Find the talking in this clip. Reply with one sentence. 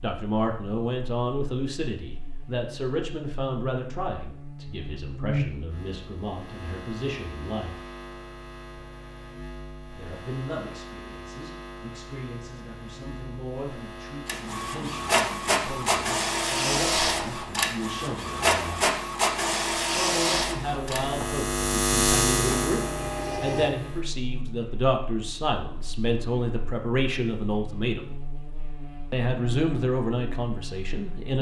You can hear the talking from 0.0 to 7.9 s, from 9.9 to 18.9 s, from 19.9 to 28.1 s and from 29.1 to 31.3 s.